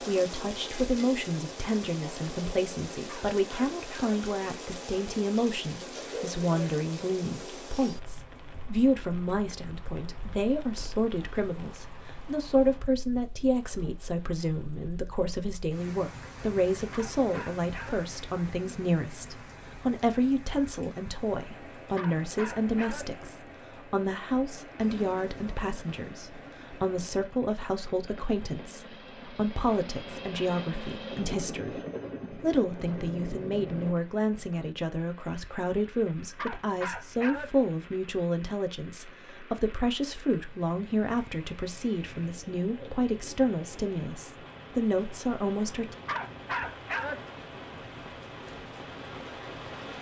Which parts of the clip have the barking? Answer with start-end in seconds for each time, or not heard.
3.0-4.2, 16.9-18.0, 21.9-23.1, 36.4-37.5, 46.0-47.2.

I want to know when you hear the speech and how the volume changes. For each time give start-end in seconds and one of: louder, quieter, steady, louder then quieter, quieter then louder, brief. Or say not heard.
0.0-46.0 steady.